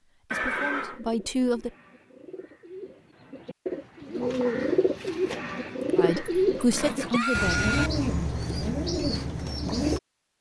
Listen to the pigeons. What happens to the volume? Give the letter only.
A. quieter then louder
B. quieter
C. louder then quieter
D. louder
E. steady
D.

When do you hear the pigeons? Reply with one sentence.
You can hear the pigeons from 0.8 to 10.0 s.